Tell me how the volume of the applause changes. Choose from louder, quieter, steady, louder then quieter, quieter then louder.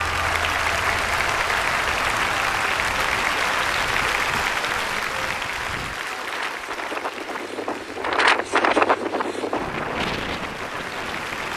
quieter.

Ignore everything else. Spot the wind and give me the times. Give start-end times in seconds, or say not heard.
0.0-11.5.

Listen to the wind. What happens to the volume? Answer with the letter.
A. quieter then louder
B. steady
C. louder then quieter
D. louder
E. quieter
C.